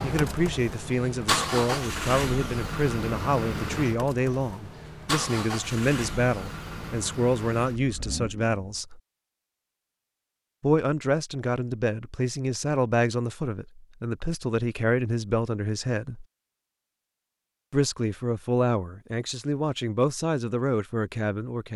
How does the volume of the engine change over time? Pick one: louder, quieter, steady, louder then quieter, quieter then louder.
quieter.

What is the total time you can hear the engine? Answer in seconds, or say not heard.
9 s.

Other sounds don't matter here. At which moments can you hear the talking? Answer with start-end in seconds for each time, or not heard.
0.0-9.0, 10.6-16.2, 17.7-21.7.